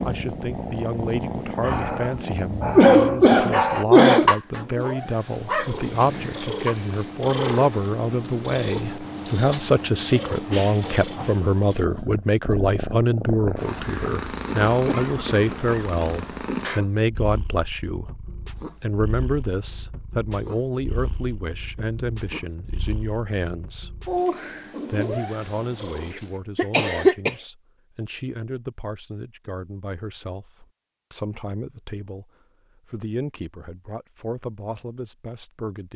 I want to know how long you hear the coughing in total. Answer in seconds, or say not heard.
4 s.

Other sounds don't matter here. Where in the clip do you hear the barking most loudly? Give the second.
4 s.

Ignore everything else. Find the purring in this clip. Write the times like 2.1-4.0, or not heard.
0.0-26.3.